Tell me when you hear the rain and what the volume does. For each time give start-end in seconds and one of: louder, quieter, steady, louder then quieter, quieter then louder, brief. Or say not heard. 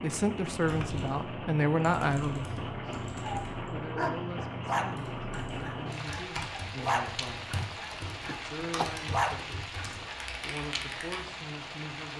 0.0-12.1 steady.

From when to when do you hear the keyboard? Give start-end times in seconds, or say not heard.
0.5-11.3.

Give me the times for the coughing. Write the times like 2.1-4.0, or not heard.
8.2-8.9.